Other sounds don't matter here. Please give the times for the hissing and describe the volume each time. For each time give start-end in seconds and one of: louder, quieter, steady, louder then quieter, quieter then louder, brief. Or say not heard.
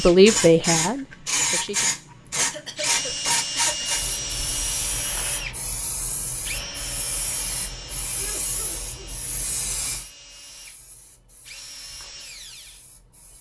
0.0-13.3 quieter.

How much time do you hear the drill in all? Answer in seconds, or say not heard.
13 s.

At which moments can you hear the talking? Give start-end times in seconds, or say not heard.
0.0-1.9.